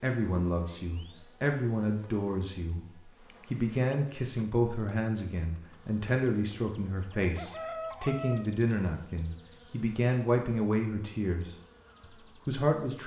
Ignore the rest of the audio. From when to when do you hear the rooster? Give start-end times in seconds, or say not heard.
5.3-8.4.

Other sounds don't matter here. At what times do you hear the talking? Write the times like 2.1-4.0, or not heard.
0.0-2.9, 3.5-11.6, 12.4-13.0.